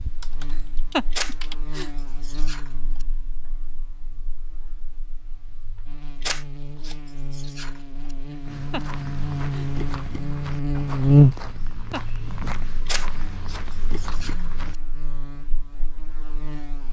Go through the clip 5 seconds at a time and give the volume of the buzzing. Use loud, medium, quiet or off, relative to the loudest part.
quiet, quiet, loud, quiet.